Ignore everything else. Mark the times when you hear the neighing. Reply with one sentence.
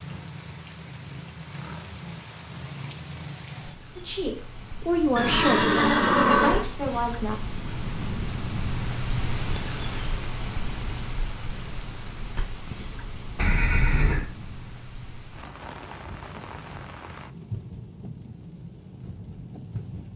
The neighing can be heard from 5.2 to 6.7 s and from 13.3 to 14.2 s.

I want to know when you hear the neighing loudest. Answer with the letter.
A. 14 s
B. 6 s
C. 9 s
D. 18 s
B.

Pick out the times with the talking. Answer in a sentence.
The talking can be heard from 4.0 to 7.3 s.